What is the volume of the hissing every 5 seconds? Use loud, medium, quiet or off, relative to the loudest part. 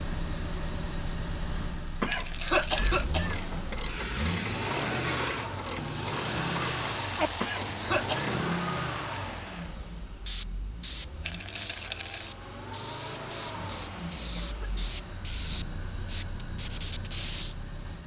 loud, loud, medium, loud.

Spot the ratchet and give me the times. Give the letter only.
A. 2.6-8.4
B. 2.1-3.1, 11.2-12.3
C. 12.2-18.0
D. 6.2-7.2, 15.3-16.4
A.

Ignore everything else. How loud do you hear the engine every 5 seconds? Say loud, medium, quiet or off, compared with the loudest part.
loud, loud, medium, medium.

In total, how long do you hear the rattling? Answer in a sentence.
You can hear the rattling for 2 seconds altogether.